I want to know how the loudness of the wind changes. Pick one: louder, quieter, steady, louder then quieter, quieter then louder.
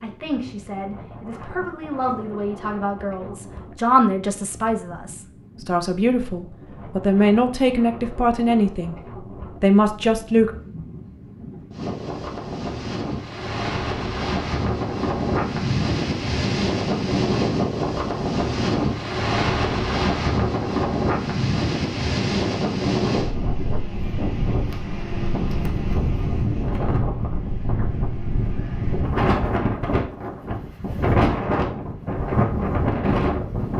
louder.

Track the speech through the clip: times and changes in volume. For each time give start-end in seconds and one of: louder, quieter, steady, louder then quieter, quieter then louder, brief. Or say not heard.
0.0-8.9 louder
9.6-10.5 brief.